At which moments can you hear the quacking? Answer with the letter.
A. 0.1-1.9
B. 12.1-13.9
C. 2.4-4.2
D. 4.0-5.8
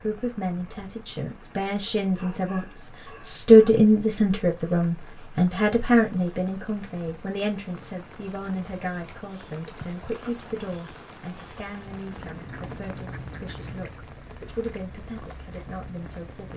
B.